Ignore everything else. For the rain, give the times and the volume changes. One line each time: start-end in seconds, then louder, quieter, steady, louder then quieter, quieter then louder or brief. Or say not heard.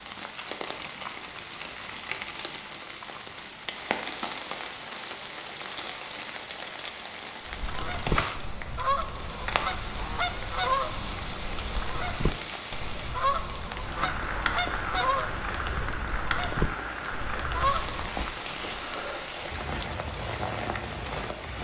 0.0-21.5 steady.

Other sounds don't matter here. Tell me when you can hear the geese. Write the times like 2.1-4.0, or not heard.
7.5-18.3.